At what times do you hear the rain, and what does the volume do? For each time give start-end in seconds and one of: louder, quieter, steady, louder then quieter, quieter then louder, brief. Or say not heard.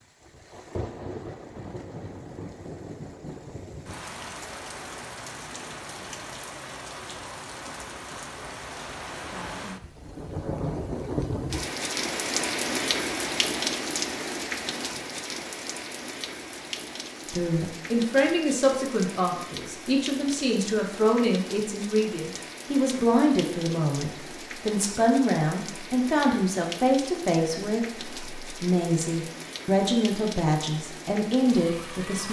0.0-32.2 louder then quieter.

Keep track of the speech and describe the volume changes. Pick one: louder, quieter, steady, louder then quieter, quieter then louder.
steady.